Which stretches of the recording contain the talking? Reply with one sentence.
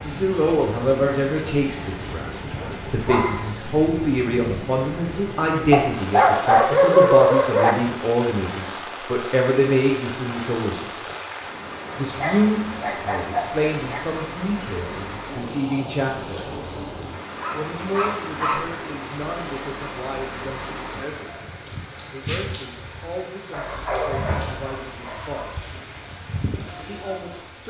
You can hear the talking from 0.1 to 11.1 s, from 11.9 to 16.4 s, from 17.5 to 25.6 s and from 26.8 to 27.6 s.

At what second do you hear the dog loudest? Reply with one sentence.
The loudest moment of the dog is at 7 seconds.